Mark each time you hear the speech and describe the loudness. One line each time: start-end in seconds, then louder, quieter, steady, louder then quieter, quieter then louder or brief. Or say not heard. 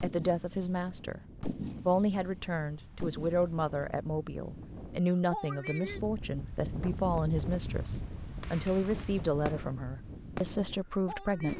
0.0-1.2 brief
1.9-11.5 steady.